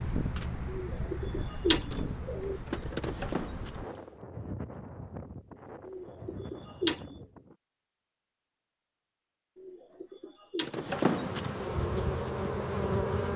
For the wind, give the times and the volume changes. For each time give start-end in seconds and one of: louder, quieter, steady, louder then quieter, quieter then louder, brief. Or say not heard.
0.0-7.5 quieter.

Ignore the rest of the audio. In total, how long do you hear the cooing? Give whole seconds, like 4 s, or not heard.
4 s.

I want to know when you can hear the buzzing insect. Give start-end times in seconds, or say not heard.
0.1-4.0, 10.7-13.3.